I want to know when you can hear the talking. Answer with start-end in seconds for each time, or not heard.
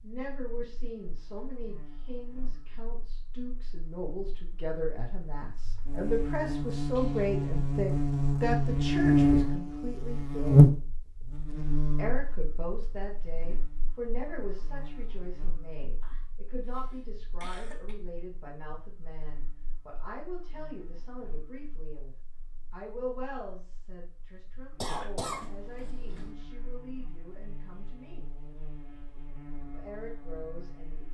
0.0-10.7, 11.9-28.2, 29.7-31.0.